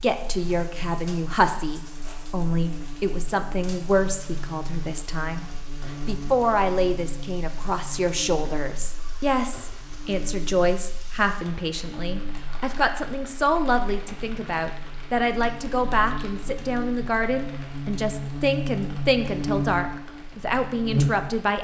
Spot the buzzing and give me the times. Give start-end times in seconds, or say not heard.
0.1-21.5.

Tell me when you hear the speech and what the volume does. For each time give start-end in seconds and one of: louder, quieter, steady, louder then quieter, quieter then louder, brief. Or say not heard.
0.0-21.5 steady.